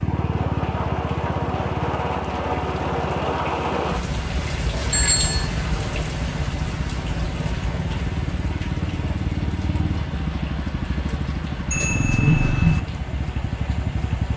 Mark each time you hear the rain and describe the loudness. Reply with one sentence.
The rain can be heard from 0.0 to 14.3 s, getting quieter.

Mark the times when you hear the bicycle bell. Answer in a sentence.
You can hear the bicycle bell from 4.9 to 5.5 s and from 11.7 to 12.8 s.